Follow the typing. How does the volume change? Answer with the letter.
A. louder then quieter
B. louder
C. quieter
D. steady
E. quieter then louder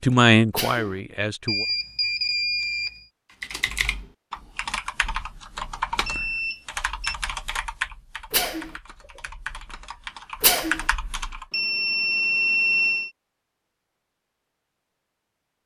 E.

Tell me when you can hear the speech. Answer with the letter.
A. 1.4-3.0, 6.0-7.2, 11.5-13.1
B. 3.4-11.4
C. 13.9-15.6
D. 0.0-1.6
D.